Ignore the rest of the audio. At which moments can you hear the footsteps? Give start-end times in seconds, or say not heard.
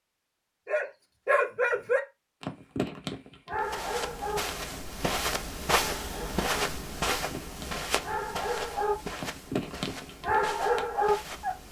3.5-11.6.